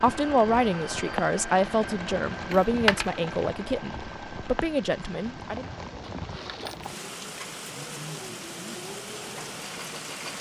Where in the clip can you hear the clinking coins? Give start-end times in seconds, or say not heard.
2.5-3.3, 6.1-6.9.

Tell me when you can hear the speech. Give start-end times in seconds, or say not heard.
0.0-5.7.